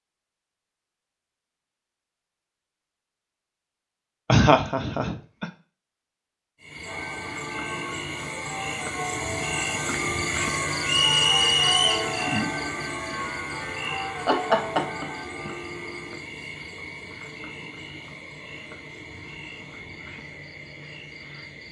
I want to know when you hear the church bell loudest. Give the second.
12 s.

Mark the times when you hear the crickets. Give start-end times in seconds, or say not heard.
6.6-21.6.